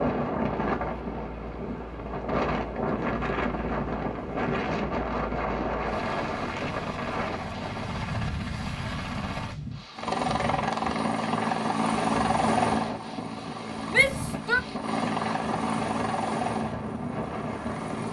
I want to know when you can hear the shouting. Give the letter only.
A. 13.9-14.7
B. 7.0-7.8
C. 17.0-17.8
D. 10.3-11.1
A.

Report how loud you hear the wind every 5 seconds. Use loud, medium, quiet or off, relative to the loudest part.
loud, loud, medium, medium.